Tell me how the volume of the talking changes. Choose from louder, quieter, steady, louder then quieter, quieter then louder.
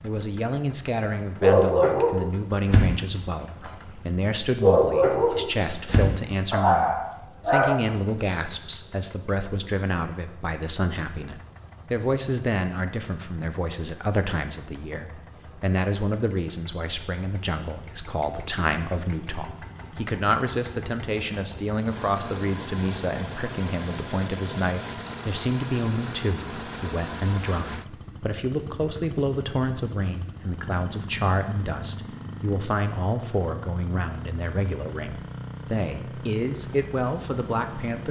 steady.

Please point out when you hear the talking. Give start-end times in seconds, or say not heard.
0.0-38.0.